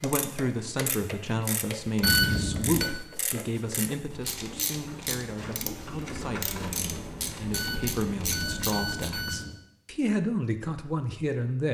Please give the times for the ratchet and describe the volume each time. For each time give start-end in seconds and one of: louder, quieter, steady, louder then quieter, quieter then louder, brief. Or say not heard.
0.0-9.2 steady.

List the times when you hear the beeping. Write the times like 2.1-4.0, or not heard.
2.0-2.9, 7.5-9.6.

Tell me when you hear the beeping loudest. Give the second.
2 s.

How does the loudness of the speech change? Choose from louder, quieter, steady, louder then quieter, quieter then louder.
quieter then louder.